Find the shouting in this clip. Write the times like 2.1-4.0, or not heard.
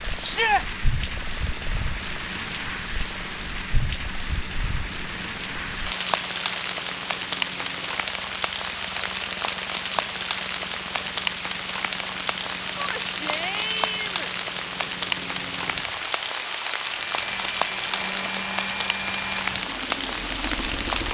0.2-0.7, 12.8-14.3.